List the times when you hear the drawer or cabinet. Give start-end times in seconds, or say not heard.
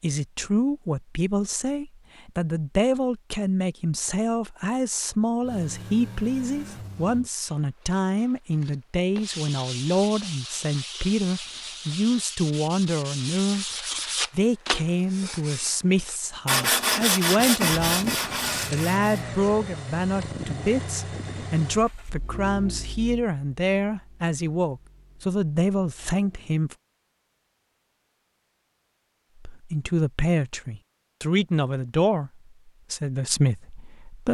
not heard.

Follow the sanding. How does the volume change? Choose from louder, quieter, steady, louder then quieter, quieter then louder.
louder.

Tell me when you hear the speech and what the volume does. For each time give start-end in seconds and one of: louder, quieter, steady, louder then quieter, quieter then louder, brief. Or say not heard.
0.0-26.8 steady
29.4-34.2 quieter then louder.